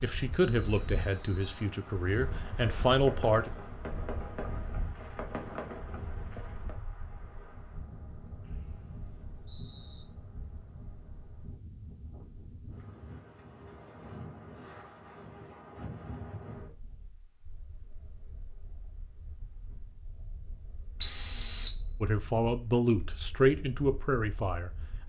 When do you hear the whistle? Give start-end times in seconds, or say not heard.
0.3-1.6, 8.4-10.1, 21.0-21.8.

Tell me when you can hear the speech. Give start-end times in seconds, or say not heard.
0.0-3.5, 22.0-24.7.